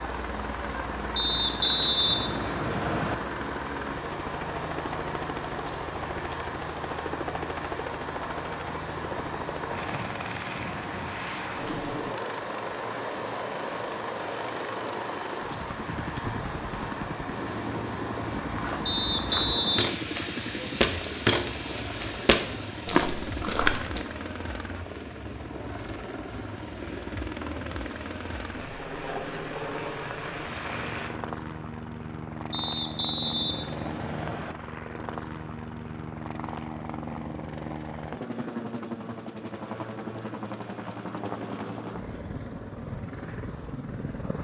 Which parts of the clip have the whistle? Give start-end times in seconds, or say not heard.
1.1-3.1, 18.9-20.0, 32.5-34.5.